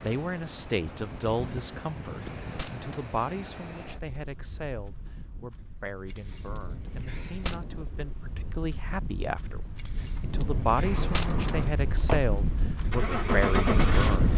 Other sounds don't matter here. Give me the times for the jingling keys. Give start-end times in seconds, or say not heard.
1.2-3.1, 6.0-7.7, 9.8-11.8.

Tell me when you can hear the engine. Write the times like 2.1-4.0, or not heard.
10.8-14.3.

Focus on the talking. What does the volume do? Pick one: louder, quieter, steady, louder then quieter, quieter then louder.
quieter then louder.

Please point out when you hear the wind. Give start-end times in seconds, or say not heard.
0.0-14.3.